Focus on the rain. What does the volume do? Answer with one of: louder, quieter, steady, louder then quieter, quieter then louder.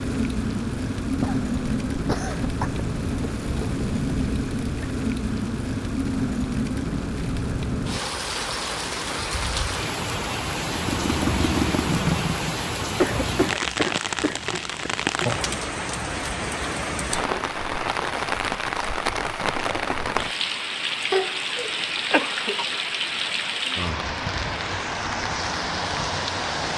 steady.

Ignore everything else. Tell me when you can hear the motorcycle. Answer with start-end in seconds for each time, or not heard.
10.6-12.7.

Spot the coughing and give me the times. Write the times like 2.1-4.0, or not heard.
1.2-2.9, 13.0-14.9, 21.1-22.6.